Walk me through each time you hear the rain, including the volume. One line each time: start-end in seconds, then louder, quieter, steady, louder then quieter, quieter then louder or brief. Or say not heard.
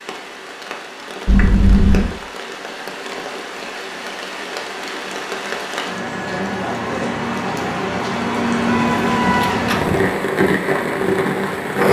0.0-11.8 louder.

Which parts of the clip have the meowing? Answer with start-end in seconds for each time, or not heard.
1.2-2.0, 8.7-10.2.